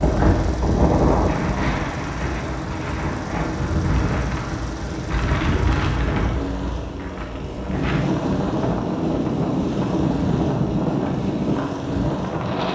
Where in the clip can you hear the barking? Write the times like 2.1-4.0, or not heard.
not heard.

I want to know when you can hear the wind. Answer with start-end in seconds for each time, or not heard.
0.0-12.6.